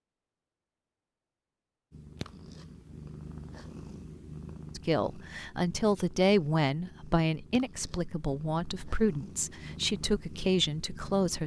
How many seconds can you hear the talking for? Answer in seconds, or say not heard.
7 s.